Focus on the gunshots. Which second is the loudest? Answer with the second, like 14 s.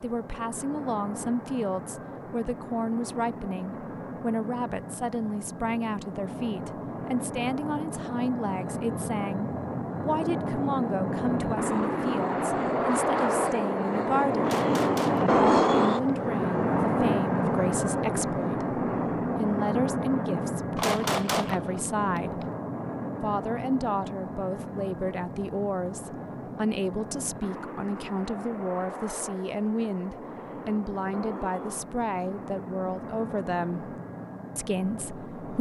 21 s.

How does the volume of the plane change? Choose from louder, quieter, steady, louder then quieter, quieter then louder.
louder then quieter.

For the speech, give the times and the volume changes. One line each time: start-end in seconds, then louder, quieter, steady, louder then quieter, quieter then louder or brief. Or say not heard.
0.0-14.5 steady
15.4-22.4 steady
23.2-34.0 steady
34.5-35.5 brief.